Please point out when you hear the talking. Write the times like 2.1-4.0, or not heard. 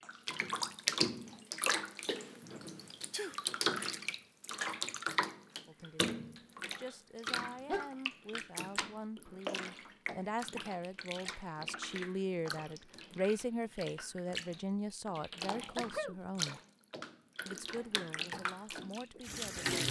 5.7-16.6, 17.4-19.7.